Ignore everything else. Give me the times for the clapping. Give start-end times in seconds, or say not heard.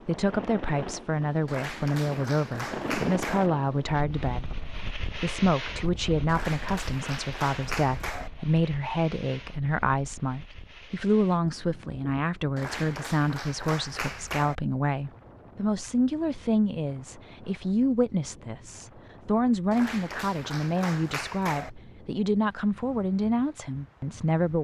1.4-3.5, 6.2-8.3, 12.6-14.6, 19.7-21.7.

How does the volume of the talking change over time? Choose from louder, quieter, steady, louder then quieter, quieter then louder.
steady.